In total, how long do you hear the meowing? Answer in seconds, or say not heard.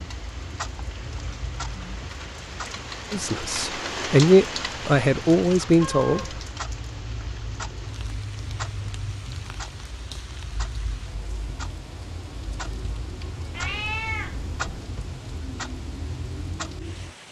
2 s.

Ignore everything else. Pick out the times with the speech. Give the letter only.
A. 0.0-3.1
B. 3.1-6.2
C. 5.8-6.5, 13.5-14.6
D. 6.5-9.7
B.